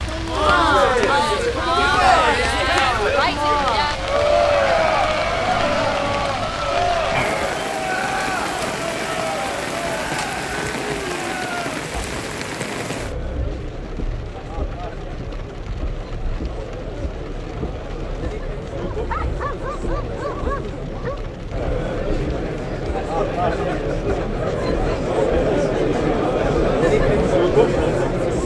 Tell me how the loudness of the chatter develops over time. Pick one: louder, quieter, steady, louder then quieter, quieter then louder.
quieter then louder.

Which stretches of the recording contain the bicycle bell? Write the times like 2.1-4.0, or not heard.
not heard.